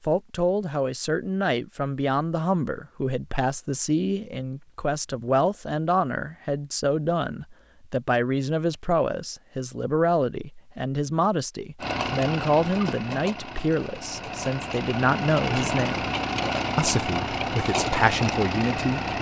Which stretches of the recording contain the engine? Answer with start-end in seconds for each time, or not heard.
11.8-19.1.